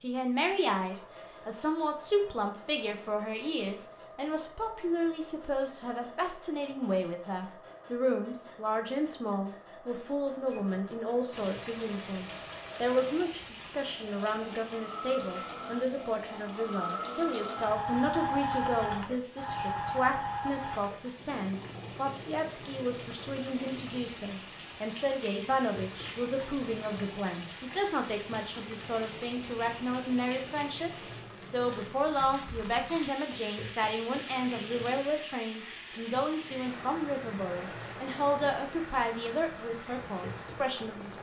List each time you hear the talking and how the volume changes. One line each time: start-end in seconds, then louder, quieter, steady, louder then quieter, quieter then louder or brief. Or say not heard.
0.0-41.1 steady.